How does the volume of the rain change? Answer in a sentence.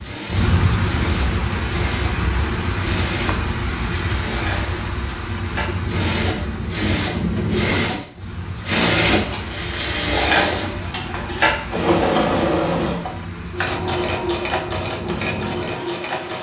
The loudness of the rain goes down.